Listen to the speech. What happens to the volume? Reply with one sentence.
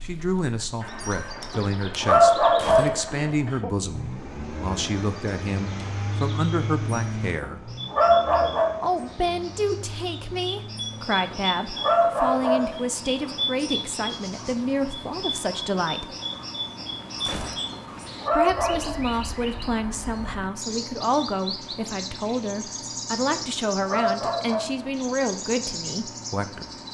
The loudness of the speech stays about the same.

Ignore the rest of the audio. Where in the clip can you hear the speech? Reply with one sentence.
The speech can be heard from 0.0 to 7.7 s, from 8.8 to 16.1 s and from 18.3 to 26.7 s.